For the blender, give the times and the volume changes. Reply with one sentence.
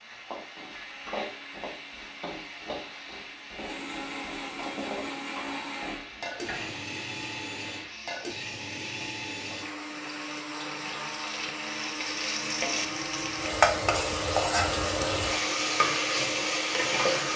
You can hear the blender from 0.0 to 17.3 s, getting louder.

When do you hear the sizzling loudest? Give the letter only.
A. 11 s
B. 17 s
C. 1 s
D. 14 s
D.